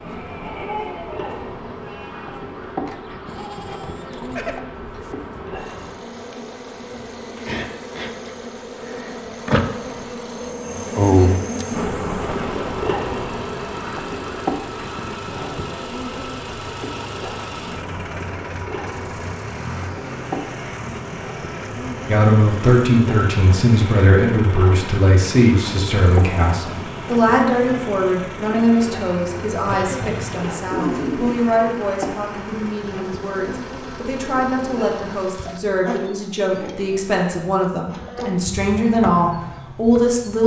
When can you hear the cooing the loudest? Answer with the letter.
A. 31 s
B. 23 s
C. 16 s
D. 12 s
A.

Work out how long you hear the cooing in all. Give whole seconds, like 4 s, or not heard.
2 s.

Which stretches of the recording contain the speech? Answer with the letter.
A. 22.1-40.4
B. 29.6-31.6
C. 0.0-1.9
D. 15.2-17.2
A.